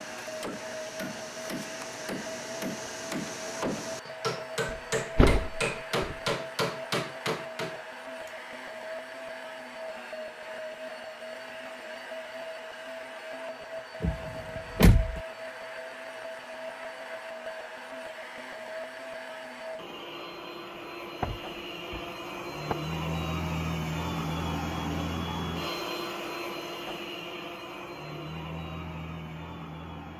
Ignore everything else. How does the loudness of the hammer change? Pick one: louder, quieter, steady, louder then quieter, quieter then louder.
louder.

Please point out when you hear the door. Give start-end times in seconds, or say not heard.
4.7-6.2, 14.0-15.2, 21.2-22.8.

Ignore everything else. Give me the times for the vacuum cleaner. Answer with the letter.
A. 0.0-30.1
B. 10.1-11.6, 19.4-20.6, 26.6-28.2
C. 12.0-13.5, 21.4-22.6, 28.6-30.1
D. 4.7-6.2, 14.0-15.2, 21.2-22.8
A.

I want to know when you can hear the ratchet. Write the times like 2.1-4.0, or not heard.
not heard.